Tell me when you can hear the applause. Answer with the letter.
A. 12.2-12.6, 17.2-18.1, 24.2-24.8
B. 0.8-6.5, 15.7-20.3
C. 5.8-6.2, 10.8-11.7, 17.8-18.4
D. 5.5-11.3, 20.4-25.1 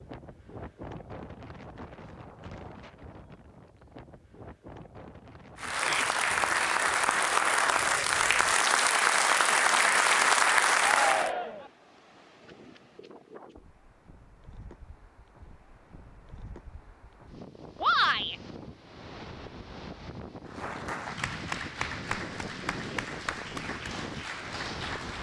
D.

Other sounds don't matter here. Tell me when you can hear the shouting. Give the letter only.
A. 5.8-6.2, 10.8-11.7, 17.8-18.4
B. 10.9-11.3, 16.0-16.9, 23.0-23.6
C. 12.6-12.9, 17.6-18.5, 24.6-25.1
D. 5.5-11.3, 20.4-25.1
A.